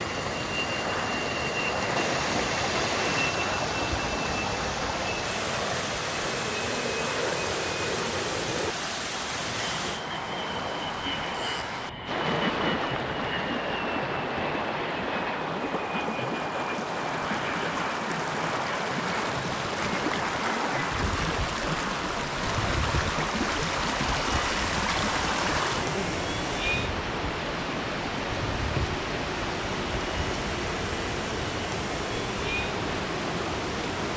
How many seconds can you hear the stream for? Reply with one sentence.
You can hear the stream for 34 seconds altogether.